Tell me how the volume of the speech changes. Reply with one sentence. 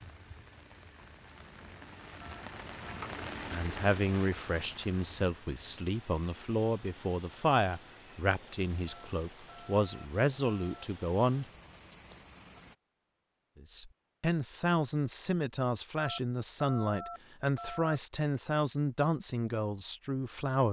The loudness of the speech stays about the same.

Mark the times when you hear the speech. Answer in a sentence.
You can hear the speech from 3.5 to 11.4 s and from 13.6 to 20.6 s.